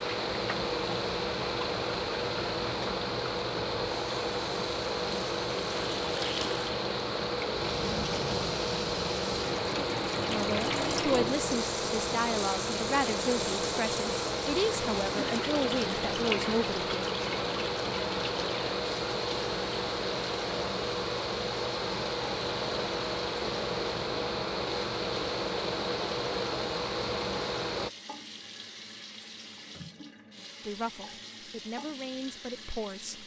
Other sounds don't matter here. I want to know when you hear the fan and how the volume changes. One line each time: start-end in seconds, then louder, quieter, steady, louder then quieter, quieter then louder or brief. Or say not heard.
0.0-27.9 steady.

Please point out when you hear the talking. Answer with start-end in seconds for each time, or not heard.
10.3-17.1, 30.6-33.2.